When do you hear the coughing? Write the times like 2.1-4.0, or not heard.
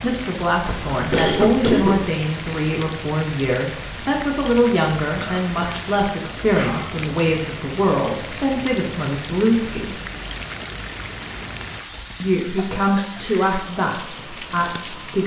0.7-2.0, 5.2-5.8, 6.4-6.9, 11.9-13.2.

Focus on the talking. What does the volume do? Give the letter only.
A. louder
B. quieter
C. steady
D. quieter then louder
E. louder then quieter
C.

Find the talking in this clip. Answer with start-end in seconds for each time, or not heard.
0.0-10.0, 12.2-15.2.